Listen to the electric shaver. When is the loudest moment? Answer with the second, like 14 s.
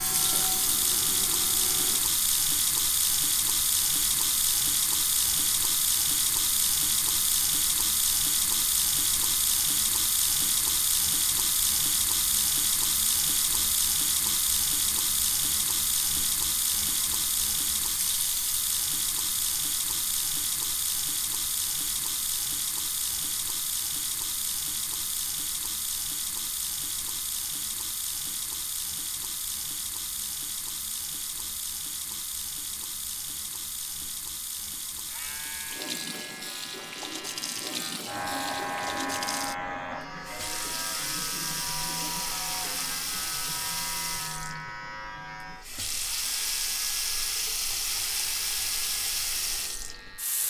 39 s.